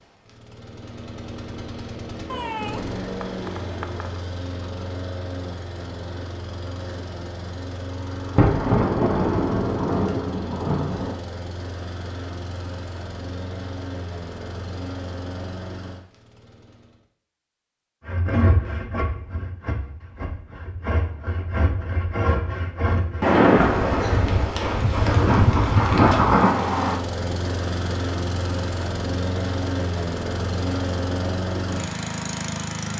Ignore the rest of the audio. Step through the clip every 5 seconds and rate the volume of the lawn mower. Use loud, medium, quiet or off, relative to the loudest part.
medium, medium, medium, medium, off, loud, loud.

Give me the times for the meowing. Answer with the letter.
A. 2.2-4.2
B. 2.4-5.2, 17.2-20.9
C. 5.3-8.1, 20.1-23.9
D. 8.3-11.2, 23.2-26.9
A.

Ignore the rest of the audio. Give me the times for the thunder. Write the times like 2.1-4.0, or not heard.
8.3-11.2, 23.2-26.9.